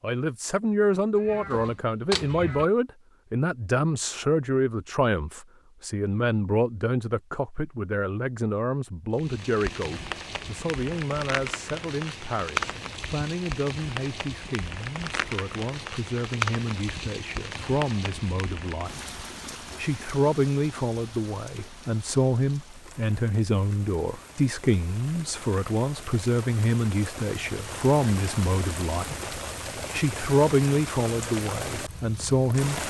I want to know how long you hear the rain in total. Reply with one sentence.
The rain can be heard for 24 seconds in total.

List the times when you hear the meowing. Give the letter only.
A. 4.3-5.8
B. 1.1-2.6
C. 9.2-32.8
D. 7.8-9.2
B.